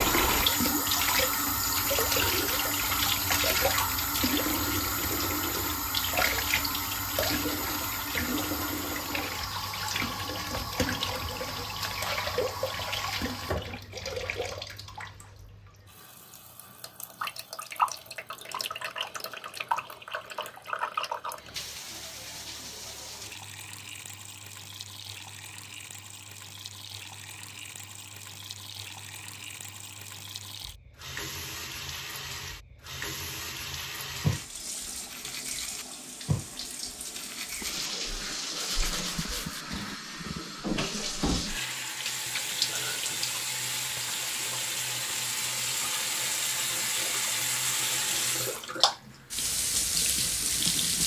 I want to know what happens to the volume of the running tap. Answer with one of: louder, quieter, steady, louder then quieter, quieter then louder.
quieter then louder.